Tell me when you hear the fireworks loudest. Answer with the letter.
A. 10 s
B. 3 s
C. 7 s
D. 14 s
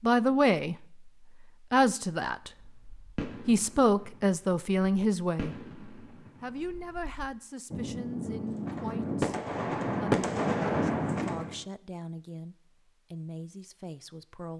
A.